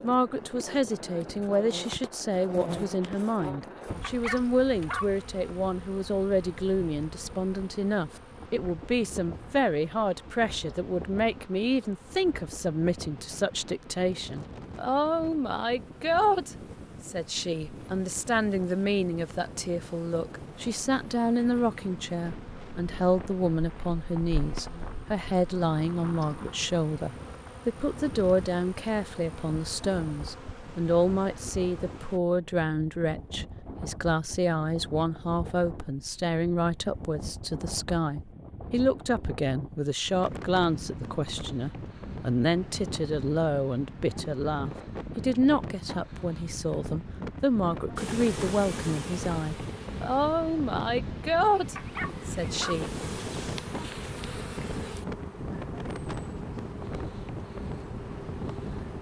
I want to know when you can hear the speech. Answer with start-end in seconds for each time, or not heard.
0.0-52.9.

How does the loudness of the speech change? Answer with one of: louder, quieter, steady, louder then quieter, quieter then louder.
steady.